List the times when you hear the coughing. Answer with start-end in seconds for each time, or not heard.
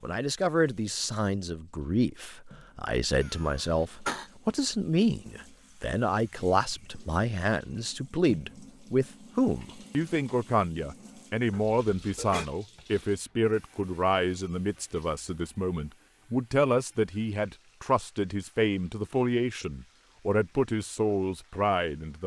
3.2-4.3, 11.5-12.5.